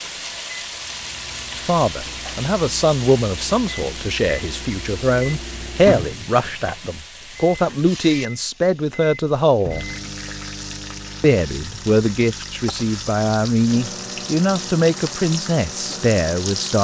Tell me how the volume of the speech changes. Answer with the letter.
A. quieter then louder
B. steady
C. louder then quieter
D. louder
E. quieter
B.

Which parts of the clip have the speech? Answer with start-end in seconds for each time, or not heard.
1.6-9.8, 11.2-16.7.